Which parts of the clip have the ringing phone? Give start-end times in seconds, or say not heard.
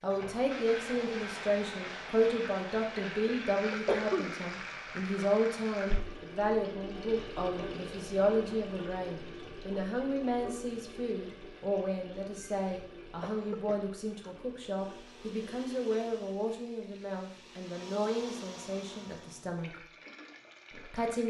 not heard.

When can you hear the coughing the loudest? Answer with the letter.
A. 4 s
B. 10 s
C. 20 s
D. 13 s
A.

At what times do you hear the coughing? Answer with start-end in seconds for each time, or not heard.
3.0-4.3, 12.3-14.3.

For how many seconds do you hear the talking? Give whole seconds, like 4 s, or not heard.
20 s.